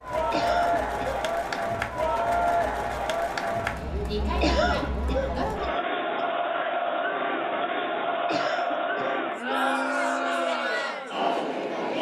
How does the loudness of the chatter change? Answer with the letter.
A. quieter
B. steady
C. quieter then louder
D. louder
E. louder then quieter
B.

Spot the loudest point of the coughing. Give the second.
5 s.